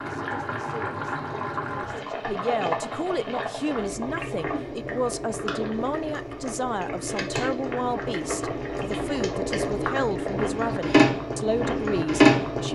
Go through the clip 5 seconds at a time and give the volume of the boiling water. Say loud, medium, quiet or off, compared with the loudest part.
medium, medium, loud.